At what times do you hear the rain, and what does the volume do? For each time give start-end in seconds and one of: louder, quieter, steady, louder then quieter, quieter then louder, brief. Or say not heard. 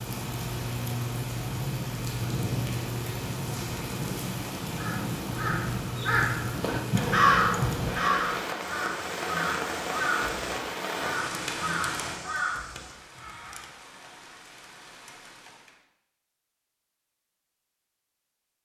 0.0-15.8 quieter.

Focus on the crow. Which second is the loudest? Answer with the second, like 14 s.
7 s.